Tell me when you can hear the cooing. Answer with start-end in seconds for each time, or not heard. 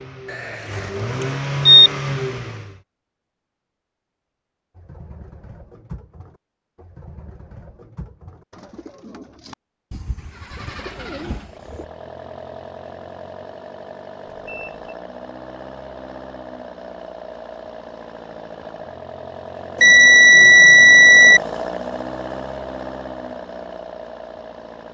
4.8-11.8.